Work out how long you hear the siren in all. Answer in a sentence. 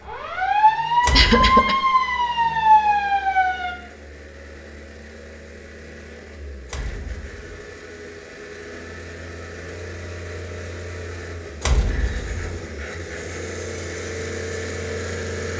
You can hear the siren for 4 seconds altogether.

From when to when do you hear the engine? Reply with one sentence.
You can hear the engine from 0.0 to 15.5 s.